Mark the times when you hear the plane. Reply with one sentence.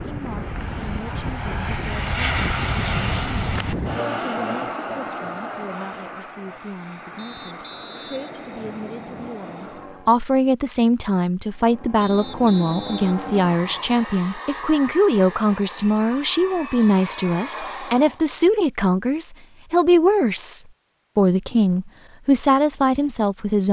You can hear the plane from 0.0 to 10.2 s and from 11.5 to 18.2 s.